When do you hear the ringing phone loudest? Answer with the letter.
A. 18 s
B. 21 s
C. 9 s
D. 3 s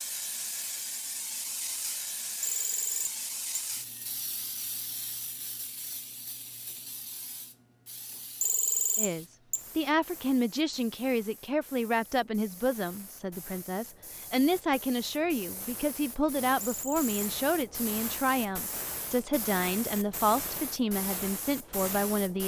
C.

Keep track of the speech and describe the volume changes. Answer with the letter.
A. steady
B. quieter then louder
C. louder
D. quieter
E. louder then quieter
A.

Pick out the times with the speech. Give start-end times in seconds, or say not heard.
8.9-22.4.